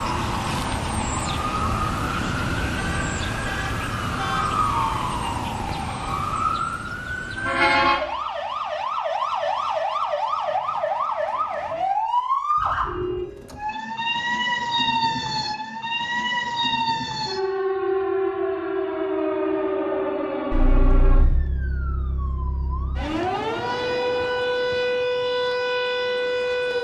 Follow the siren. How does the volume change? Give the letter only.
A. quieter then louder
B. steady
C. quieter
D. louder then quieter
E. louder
B.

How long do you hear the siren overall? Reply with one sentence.
You can hear the siren for 27 seconds altogether.